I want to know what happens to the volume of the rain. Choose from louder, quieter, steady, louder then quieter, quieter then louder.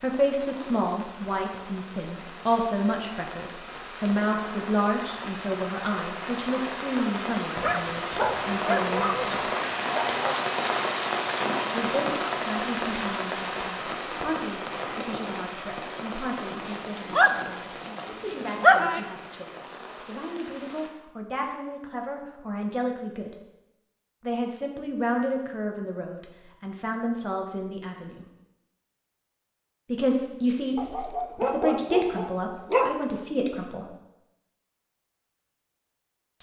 louder then quieter.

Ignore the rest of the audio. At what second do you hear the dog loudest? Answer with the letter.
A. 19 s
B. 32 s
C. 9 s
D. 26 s
A.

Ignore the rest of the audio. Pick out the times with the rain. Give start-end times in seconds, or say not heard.
0.0-20.9.